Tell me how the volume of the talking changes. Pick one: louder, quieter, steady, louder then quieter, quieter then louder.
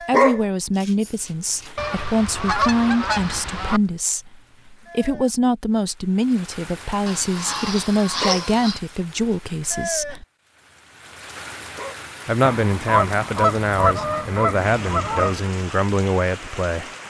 steady.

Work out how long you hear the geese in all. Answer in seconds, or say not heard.
7 s.